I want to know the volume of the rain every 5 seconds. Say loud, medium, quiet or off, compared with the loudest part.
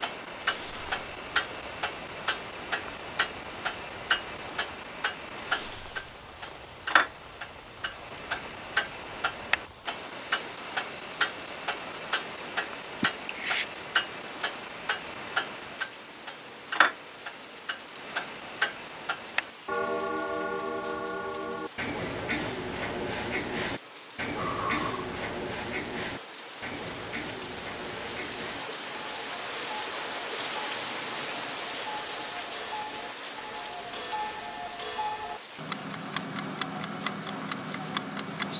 medium, medium, medium, medium, medium, loud, loud, medium.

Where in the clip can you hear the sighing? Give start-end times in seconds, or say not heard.
13.0-13.7, 24.4-25.0.